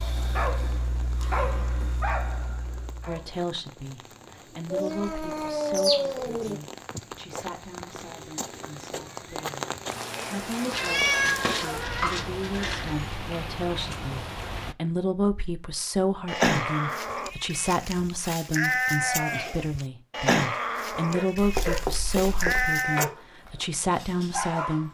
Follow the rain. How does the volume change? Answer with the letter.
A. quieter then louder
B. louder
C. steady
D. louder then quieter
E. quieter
B.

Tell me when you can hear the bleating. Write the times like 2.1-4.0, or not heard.
16.2-23.1.